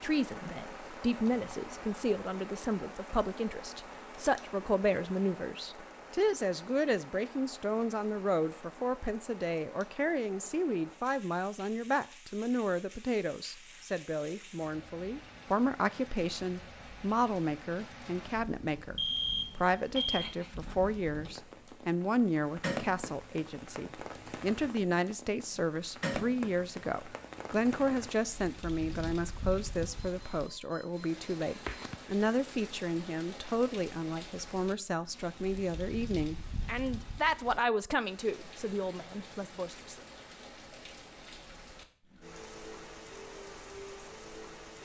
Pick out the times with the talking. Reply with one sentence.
You can hear the talking from 0.0 to 40.0 s.